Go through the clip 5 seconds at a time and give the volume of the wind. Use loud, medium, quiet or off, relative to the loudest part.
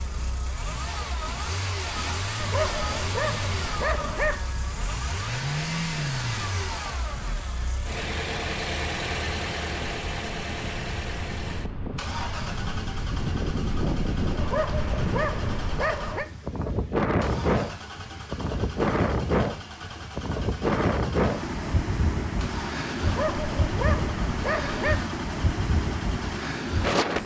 quiet, quiet, medium, loud, loud, loud.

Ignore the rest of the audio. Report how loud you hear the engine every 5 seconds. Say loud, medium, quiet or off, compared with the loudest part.
loud, loud, medium, medium, medium, medium.